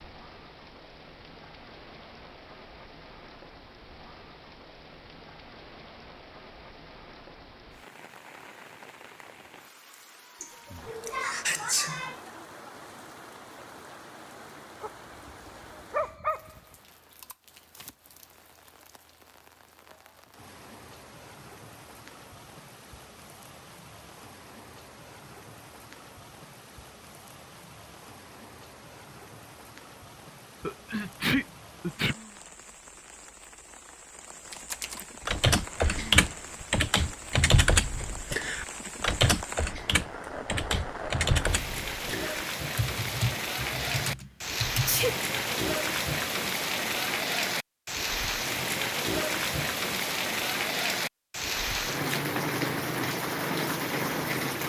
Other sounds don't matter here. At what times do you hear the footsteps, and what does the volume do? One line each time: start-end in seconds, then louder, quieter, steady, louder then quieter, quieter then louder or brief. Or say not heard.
not heard.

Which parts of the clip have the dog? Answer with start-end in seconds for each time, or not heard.
14.8-16.6.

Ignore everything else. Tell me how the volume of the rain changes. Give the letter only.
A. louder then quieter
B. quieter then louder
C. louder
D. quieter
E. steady
C.